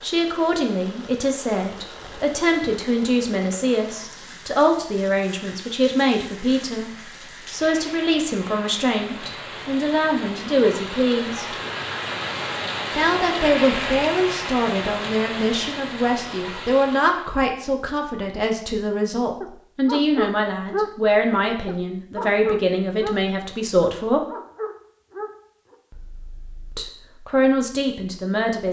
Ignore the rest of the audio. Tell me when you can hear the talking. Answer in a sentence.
You can hear the talking from 0.0 to 11.6 s, from 12.9 to 24.2 s and from 26.8 to 28.6 s.